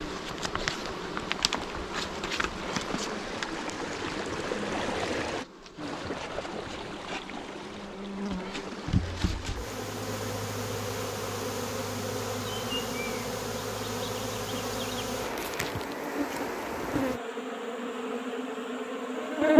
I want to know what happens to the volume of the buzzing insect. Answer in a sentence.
The volume of the buzzing insect goes down, then up.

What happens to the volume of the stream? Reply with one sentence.
The loudness of the stream goes up, then down.